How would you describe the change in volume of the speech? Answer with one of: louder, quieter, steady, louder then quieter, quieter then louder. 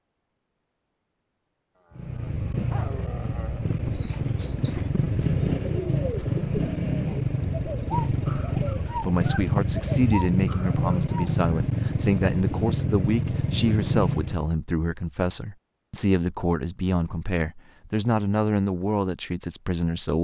steady.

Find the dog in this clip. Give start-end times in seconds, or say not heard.
1.8-3.6.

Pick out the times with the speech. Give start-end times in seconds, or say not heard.
8.7-20.1.